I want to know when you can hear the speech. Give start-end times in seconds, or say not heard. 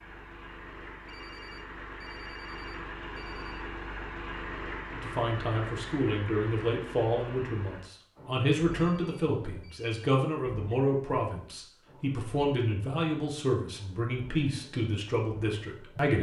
4.9-16.1.